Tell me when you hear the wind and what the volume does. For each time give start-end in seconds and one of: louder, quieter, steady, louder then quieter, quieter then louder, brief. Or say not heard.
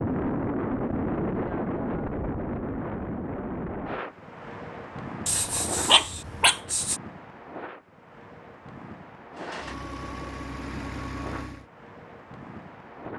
0.0-13.1 quieter.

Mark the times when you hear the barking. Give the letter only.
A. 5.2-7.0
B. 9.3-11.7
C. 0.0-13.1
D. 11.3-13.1
A.